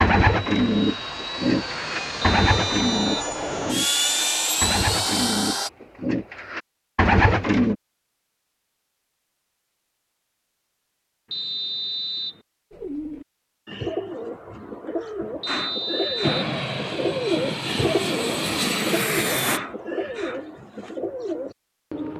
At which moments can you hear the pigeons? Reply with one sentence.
You can hear the pigeons from 0.0 to 7.8 s and from 12.7 to 22.1 s.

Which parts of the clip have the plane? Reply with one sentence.
The plane can be heard from 0.2 to 5.7 s and from 16.2 to 19.6 s.